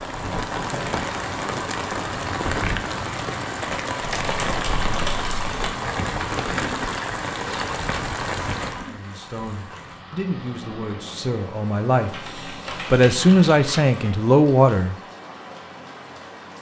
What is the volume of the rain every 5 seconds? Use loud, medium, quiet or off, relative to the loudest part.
loud, loud, quiet, quiet.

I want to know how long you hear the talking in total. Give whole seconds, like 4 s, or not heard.
5 s.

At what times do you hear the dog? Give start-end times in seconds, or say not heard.
not heard.